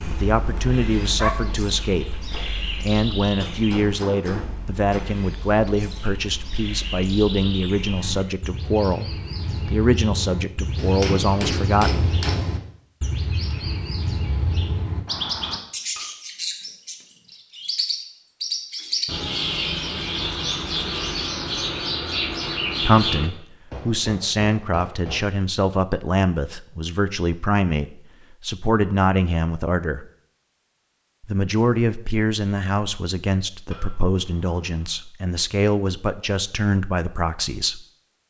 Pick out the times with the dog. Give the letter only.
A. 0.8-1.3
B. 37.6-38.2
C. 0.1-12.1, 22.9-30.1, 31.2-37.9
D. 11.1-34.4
A.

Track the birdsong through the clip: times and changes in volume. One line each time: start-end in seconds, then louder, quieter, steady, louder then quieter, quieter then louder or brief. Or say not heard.
0.0-23.3 louder.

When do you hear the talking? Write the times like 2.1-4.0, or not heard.
0.1-12.1, 22.9-30.1, 31.2-37.9.